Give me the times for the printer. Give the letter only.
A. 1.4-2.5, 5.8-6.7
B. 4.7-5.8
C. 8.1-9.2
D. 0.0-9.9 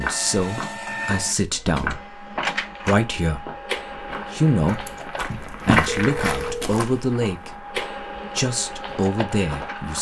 D.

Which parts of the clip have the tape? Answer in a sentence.
The tape can't be heard in this clip.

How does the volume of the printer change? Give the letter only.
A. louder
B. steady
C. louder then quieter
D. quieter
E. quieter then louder
E.